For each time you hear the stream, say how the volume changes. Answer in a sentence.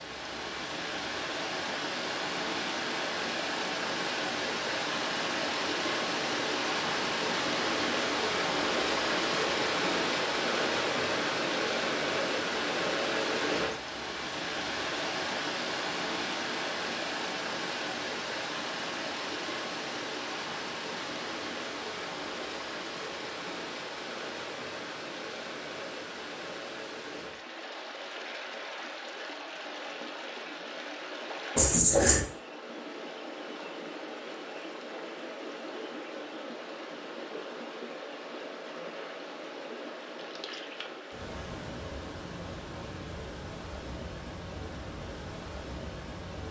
You can hear the stream from 0.0 to 46.4 s, getting quieter.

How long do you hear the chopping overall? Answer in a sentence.
You can't hear the chopping here.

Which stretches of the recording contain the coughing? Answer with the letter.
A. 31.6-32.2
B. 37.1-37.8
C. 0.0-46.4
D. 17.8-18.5
A.